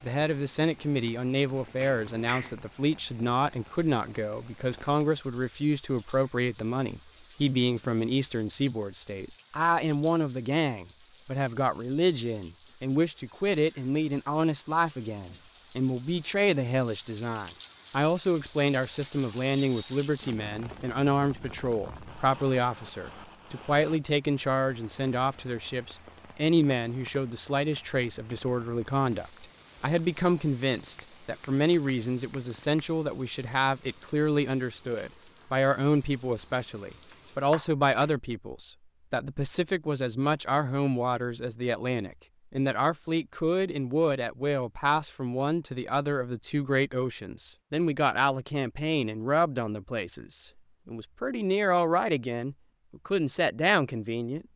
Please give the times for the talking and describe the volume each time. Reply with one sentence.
The talking can be heard from 0.0 to 54.5 s, at a steady volume.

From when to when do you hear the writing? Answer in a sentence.
The writing can't be heard in this clip.